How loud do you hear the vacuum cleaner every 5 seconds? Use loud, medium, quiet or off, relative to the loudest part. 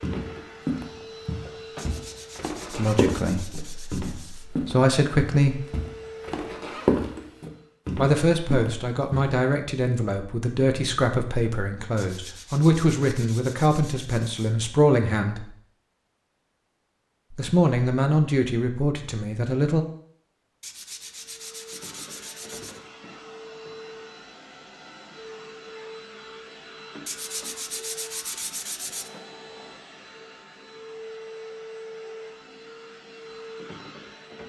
loud, loud, off, off, loud, loud, loud.